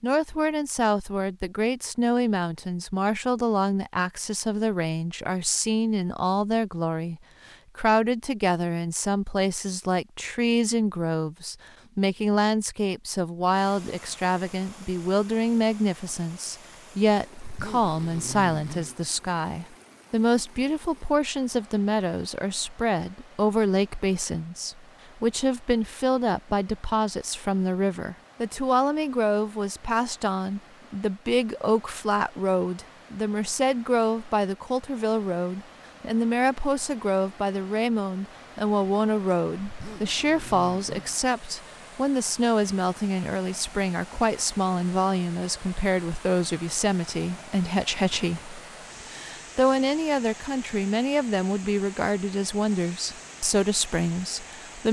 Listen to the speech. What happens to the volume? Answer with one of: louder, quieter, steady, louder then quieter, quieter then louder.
steady.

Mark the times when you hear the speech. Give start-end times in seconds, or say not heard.
0.0-54.8.